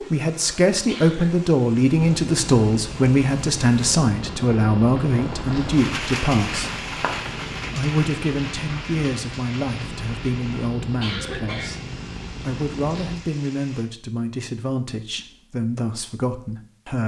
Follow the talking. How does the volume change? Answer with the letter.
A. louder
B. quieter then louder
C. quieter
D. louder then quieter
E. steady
C.